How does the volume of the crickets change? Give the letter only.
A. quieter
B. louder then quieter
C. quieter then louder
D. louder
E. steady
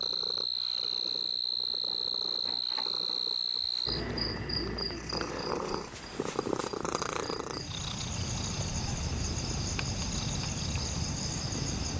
C.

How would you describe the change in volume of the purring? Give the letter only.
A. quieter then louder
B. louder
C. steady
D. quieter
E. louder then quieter
E.